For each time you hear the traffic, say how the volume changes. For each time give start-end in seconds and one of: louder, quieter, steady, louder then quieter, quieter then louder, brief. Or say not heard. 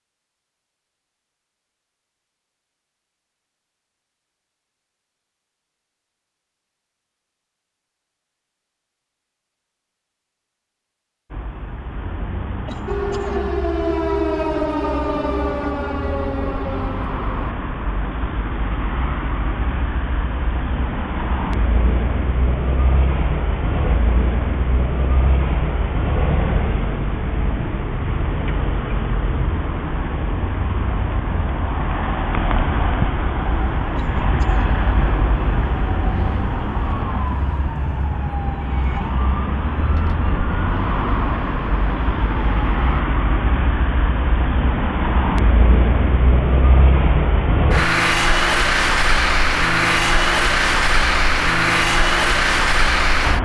11.3-53.4 louder.